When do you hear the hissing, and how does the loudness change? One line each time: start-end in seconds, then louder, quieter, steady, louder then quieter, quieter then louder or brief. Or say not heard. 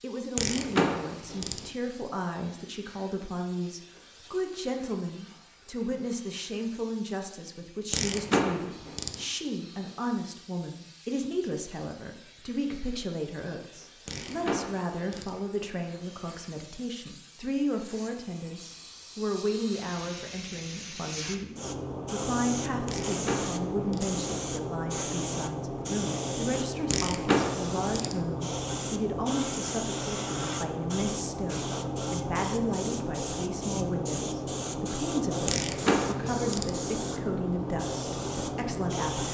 0.0-39.2 louder.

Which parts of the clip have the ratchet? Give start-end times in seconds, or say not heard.
0.3-1.7, 7.9-9.2, 14.1-15.4, 22.9-24.2, 26.9-28.2, 35.5-36.8.